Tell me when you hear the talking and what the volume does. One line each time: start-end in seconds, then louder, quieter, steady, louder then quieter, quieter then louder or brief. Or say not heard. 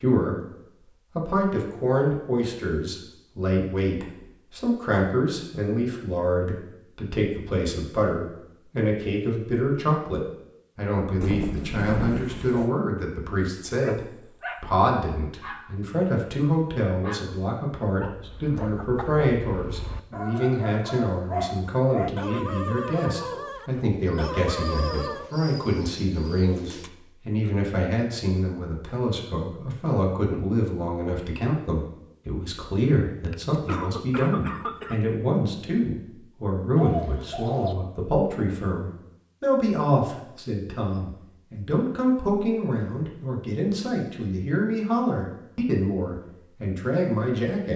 0.0-47.7 steady.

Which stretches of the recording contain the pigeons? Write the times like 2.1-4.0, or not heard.
11.2-12.7, 24.0-26.9, 36.8-37.8.